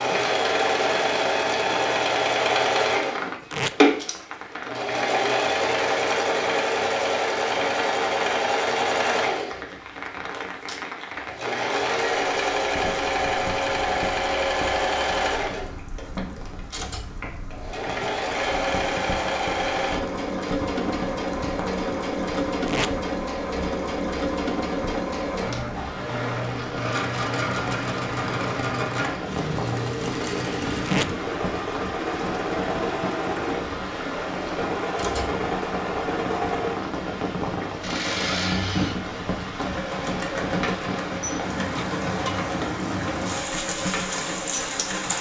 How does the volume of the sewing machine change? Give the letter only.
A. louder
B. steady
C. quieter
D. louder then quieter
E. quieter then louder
C.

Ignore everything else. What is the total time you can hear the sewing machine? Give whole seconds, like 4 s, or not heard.
45 s.